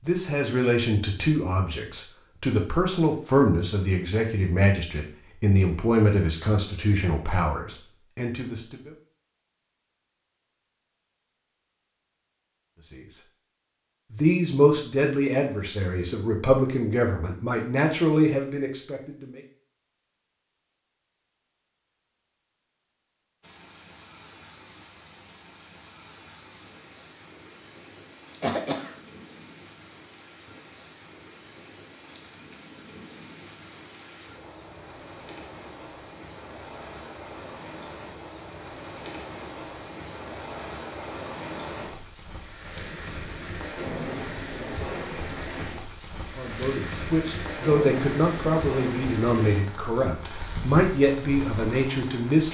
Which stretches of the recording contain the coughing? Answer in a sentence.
The coughing can be heard from 28.4 to 28.9 s.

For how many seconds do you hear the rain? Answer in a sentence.
The rain can be heard for 29 seconds in total.